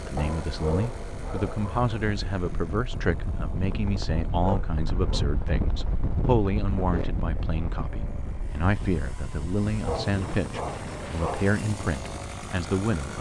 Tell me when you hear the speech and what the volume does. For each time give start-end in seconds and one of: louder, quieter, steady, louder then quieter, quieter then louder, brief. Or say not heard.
0.0-13.1 steady.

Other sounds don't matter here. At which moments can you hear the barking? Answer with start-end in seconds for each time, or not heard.
0.1-1.9, 4.4-5.2, 9.8-11.5.